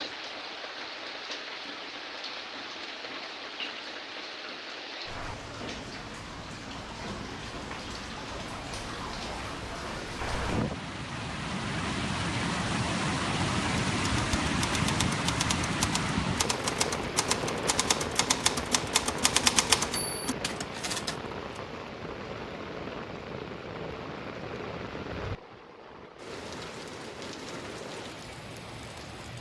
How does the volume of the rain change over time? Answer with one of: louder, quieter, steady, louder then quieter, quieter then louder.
louder then quieter.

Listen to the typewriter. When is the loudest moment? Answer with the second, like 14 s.
20 s.